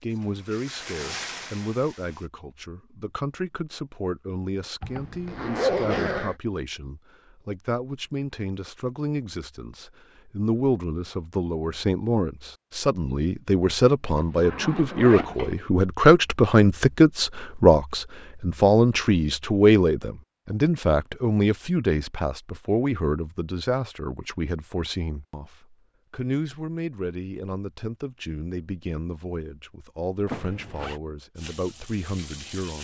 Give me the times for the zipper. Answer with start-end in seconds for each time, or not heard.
4.8-6.3, 14.1-15.6, 30.2-31.0.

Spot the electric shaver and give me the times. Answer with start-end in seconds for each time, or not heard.
not heard.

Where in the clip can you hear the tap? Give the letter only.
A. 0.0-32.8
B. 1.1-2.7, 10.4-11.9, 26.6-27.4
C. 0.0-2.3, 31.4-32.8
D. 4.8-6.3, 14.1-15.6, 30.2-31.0
C.